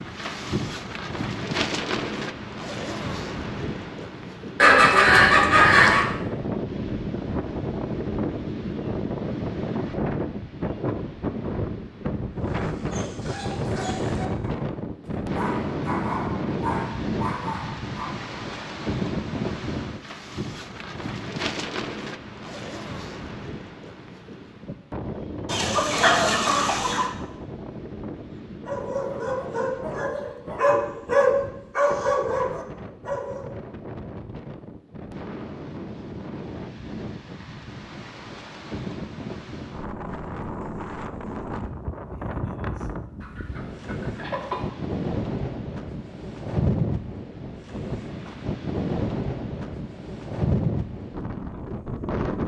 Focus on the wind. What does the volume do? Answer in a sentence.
The loudness of the wind goes down, then up.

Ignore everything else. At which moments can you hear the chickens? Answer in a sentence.
You can hear the chickens from 4.6 to 6.1 s, from 25.4 to 27.1 s and from 43.2 to 44.7 s.